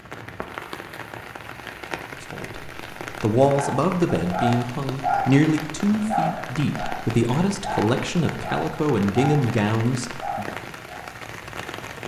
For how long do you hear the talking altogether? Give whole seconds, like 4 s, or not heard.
8 s.